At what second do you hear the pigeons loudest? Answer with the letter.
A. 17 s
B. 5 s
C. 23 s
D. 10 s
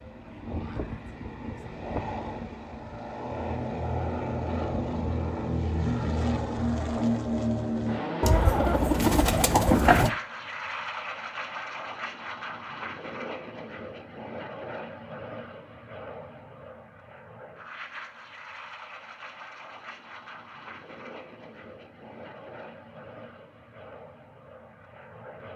D.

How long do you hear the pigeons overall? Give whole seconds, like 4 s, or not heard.
2 s.